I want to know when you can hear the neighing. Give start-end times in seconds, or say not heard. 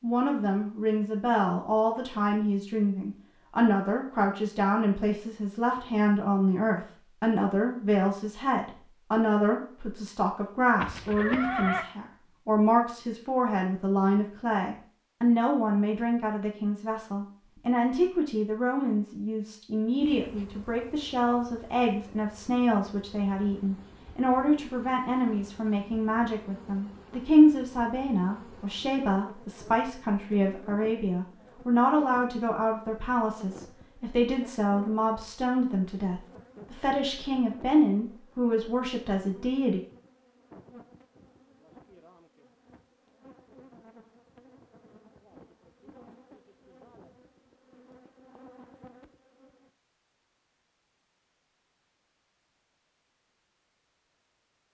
10.8-11.8.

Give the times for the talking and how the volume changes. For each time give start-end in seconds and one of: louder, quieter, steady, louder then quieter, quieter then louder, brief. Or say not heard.
0.0-39.8 steady.